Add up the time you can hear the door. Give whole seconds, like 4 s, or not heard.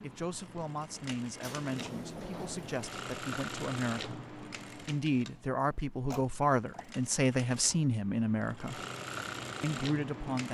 3 s.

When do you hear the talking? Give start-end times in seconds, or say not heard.
0.0-8.8, 9.6-10.4.